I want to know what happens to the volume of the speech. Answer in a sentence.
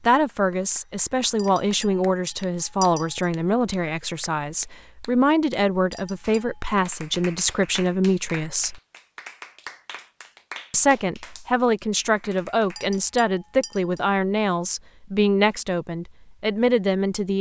The volume of the speech stays about the same.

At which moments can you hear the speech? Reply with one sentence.
The speech can be heard from 0.0 to 8.8 s and from 10.7 to 17.3 s.